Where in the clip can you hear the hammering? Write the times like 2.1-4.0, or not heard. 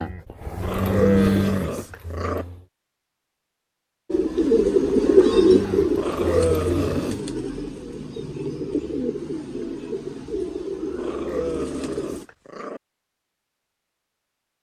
not heard.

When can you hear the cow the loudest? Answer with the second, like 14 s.
1 s.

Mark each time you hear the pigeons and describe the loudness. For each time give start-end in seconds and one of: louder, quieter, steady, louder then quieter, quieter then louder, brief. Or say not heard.
4.1-12.2 quieter.